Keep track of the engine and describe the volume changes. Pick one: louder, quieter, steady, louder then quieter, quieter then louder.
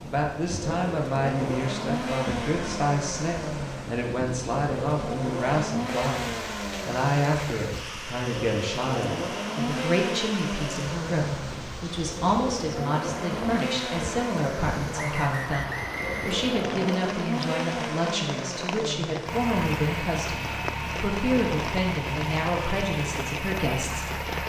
steady.